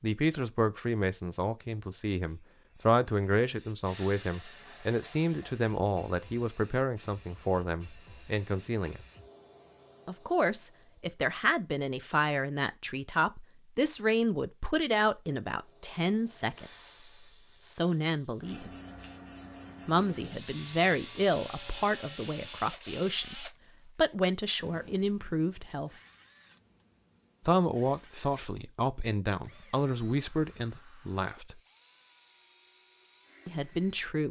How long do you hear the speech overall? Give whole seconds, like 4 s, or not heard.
28 s.